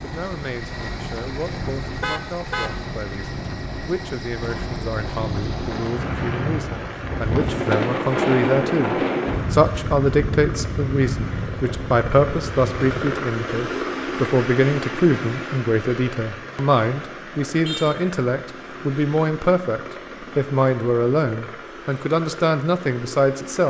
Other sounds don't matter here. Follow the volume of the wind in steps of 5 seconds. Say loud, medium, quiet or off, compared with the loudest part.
medium, loud, medium, off, off.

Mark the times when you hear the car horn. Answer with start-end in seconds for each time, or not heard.
1.8-2.8, 17.6-18.1.